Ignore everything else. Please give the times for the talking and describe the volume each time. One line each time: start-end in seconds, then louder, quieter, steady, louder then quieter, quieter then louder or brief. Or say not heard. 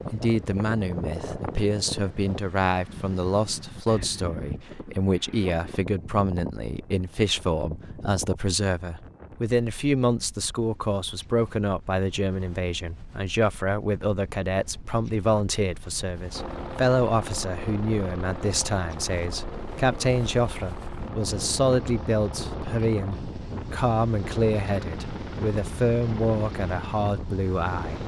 0.1-28.0 steady.